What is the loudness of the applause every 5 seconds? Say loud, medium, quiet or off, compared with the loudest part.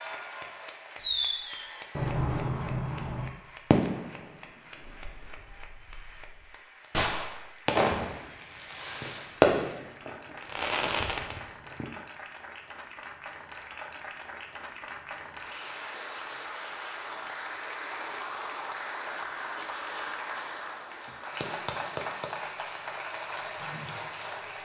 medium, quiet, medium, loud, loud.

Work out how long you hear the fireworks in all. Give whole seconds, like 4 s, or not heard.
11 s.